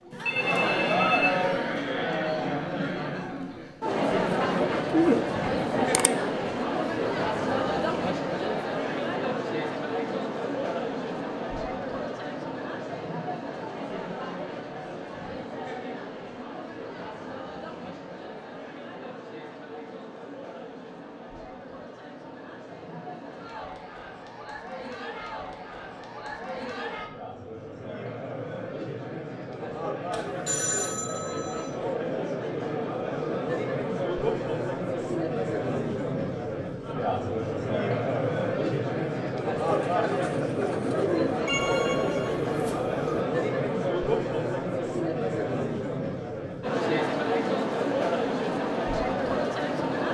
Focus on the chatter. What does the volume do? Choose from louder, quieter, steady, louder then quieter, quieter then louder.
quieter then louder.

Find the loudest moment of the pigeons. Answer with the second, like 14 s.
5 s.